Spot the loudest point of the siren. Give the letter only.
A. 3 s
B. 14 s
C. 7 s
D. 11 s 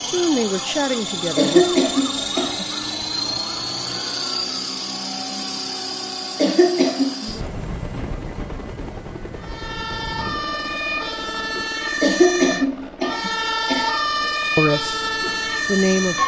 B.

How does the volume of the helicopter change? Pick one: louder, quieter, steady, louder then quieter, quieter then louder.
quieter.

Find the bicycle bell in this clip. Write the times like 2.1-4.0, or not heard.
not heard.